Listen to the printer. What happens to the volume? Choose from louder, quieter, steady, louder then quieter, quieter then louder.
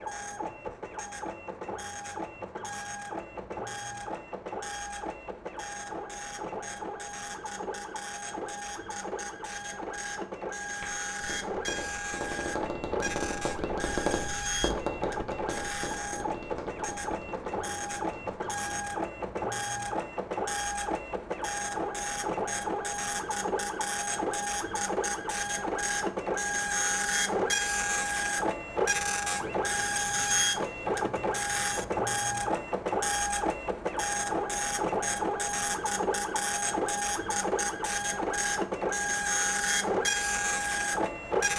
louder.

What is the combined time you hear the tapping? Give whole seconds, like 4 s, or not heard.
8 s.